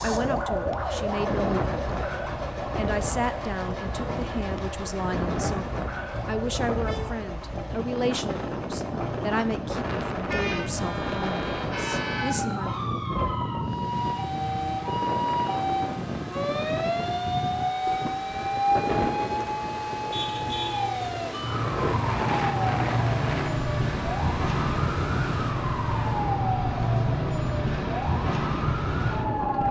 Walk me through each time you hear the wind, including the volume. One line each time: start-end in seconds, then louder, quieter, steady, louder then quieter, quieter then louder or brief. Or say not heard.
0.0-29.6 steady.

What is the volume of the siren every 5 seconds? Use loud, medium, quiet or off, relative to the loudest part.
medium, quiet, medium, loud, loud, loud.